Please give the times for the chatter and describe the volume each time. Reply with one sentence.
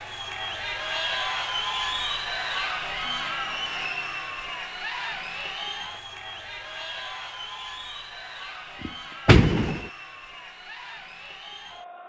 You can hear the chatter from 0.0 to 12.0 s, getting quieter.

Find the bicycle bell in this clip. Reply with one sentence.
The bicycle bell can't be heard in this clip.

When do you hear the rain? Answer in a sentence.
The rain can't be heard in this clip.